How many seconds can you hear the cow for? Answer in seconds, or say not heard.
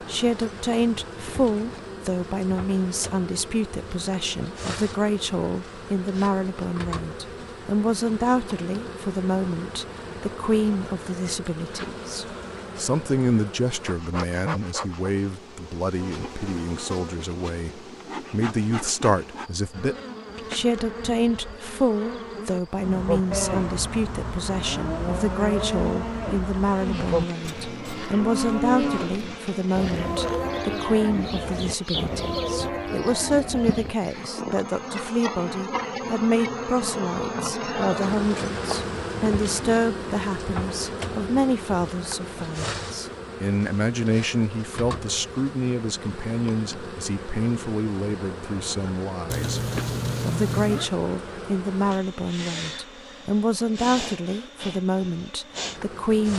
11 s.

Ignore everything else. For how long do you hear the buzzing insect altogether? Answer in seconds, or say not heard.
56 s.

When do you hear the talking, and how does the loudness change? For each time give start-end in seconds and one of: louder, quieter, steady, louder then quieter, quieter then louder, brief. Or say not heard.
0.0-56.3 steady.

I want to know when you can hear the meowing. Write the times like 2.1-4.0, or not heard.
49.3-50.9.